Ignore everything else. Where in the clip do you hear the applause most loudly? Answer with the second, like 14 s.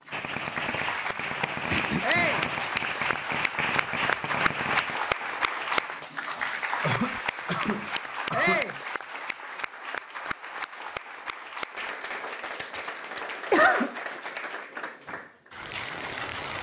5 s.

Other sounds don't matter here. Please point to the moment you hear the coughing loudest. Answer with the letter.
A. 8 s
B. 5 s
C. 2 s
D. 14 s
D.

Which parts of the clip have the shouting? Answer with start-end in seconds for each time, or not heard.
2.0-2.5, 8.3-8.8.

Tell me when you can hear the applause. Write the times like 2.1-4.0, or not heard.
0.0-16.5.